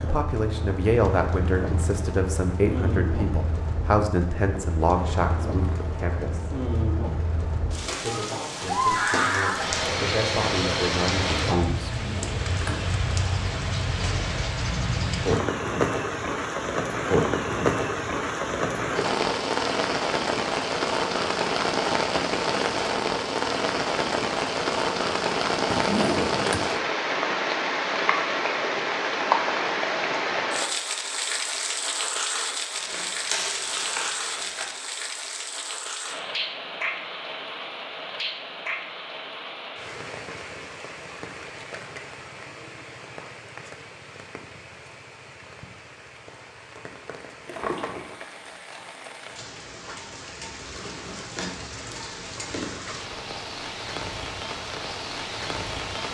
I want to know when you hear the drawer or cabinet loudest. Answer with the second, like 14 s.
26 s.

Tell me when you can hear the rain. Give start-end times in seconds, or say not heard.
0.0-56.1.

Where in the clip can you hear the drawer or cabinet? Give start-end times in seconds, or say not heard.
11.9-12.9, 25.7-26.6, 47.5-48.2.